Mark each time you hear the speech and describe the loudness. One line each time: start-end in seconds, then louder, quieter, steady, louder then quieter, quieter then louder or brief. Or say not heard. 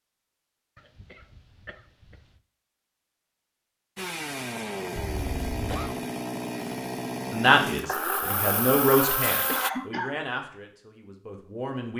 7.3-11.9 louder then quieter.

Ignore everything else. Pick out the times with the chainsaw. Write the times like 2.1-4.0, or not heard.
4.0-9.7.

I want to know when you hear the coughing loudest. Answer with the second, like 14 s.
10 s.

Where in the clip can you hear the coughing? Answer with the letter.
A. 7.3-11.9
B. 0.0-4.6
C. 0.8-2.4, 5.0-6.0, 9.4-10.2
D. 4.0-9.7
C.